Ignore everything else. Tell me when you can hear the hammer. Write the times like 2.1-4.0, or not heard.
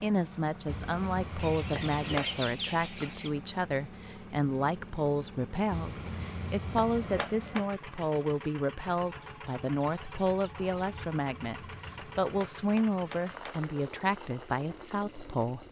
0.7-2.4, 5.7-7.7, 10.9-13.6.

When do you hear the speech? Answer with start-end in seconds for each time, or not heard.
0.0-15.6.